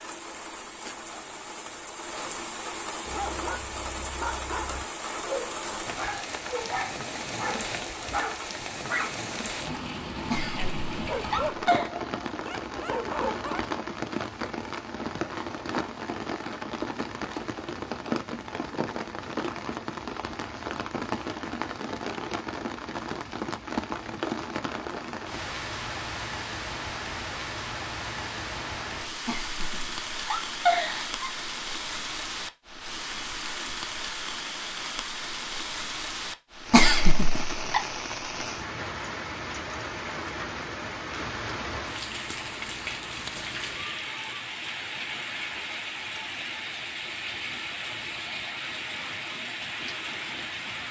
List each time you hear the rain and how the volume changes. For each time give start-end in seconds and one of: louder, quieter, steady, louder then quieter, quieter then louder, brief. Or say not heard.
0.0-50.8 steady.